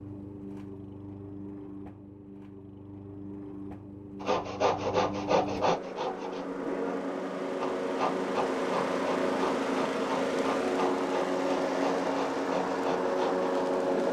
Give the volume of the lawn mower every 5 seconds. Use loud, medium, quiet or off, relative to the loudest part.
quiet, loud, loud.